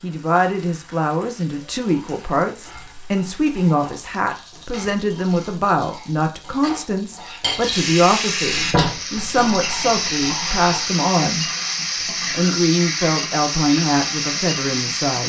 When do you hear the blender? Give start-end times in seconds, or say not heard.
not heard.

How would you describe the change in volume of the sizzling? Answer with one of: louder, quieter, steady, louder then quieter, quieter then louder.
louder.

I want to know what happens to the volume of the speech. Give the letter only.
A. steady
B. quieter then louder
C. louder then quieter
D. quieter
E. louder
A.